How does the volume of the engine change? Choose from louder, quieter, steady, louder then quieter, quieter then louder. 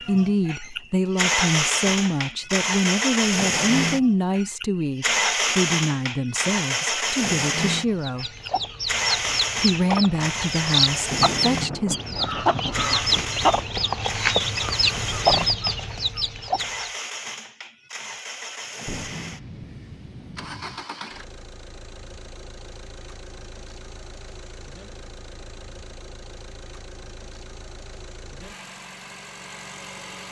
quieter.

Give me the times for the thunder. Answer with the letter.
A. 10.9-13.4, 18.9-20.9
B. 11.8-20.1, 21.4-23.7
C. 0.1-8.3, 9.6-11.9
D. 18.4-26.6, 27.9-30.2
A.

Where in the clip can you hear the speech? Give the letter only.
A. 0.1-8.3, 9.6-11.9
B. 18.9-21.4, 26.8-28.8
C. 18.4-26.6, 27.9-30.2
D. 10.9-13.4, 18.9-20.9
A.